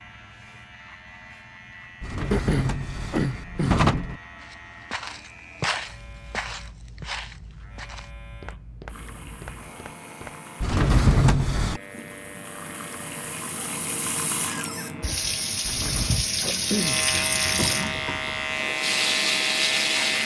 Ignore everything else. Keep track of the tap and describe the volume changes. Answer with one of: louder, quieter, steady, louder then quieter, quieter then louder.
louder.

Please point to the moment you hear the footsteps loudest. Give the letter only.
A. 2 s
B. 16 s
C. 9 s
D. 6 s
D.